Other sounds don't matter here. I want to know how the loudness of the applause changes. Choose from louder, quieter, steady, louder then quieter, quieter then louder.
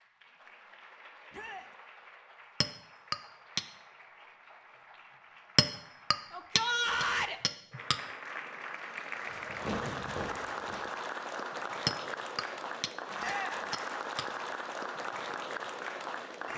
louder.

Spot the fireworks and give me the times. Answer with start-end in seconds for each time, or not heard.
9.2-10.9.